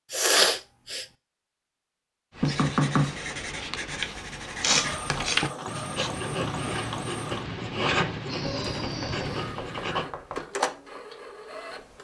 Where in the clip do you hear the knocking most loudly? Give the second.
3 s.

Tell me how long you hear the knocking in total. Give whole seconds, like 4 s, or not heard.
3 s.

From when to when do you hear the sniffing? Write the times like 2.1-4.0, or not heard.
0.1-1.1, 4.6-6.1, 8.2-10.2.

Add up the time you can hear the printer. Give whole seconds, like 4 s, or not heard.
6 s.